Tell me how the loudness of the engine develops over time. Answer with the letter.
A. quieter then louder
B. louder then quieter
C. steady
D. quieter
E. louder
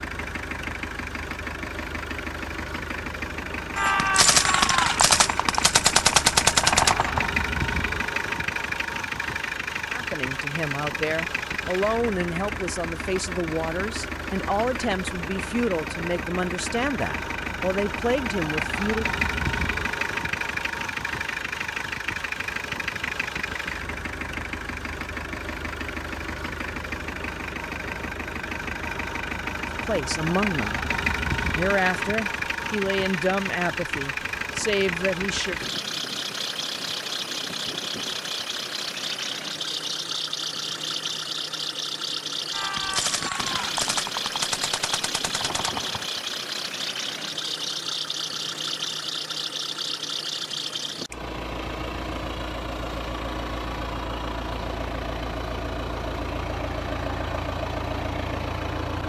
C.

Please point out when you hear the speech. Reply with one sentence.
You can hear the speech from 9.9 to 19.1 s, from 29.8 to 30.8 s and from 31.6 to 35.6 s.